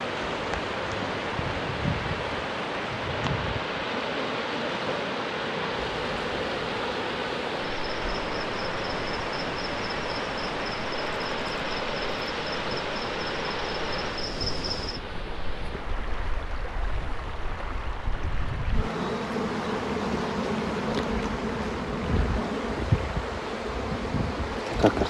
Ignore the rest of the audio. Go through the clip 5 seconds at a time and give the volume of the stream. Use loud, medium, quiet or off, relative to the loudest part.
loud, loud, loud, medium, medium.